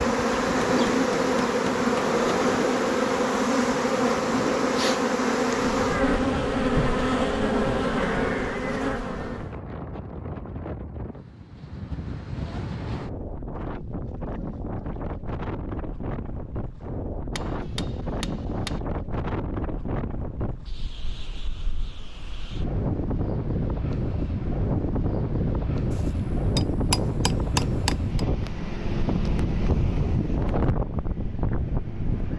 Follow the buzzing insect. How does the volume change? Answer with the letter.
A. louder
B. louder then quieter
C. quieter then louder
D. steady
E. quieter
D.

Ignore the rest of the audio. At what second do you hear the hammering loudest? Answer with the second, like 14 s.
28 s.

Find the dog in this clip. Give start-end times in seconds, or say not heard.
not heard.